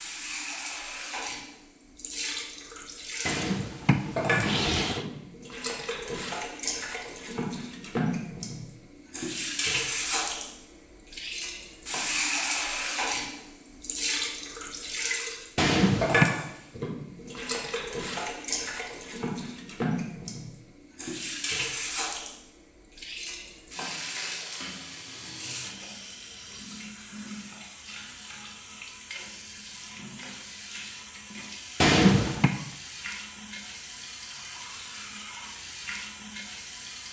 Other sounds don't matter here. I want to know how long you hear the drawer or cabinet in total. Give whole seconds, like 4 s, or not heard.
3 s.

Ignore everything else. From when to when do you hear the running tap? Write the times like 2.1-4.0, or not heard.
0.0-37.0.